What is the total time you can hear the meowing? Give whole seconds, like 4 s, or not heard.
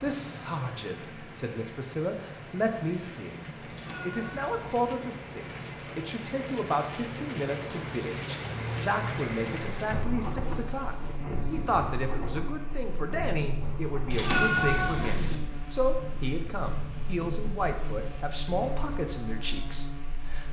2 s.